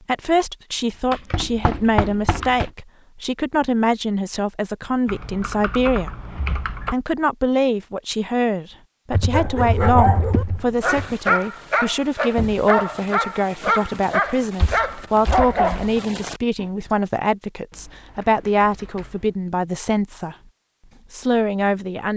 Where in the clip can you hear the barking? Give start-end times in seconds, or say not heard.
9.3-16.6.